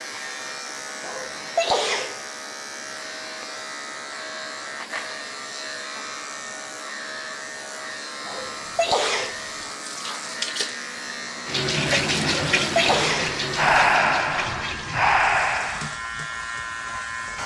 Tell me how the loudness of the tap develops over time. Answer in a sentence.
The volume of the tap goes up, then down.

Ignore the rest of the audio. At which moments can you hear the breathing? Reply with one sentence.
You can hear the breathing from 12.7 to 15.9 s.